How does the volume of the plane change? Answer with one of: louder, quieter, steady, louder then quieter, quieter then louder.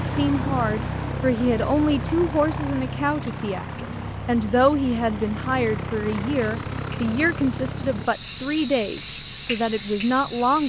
quieter.